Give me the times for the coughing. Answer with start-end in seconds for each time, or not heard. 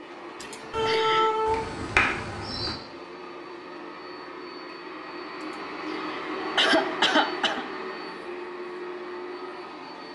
0.4-1.3, 5.4-7.7.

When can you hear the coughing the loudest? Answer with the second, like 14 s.
7 s.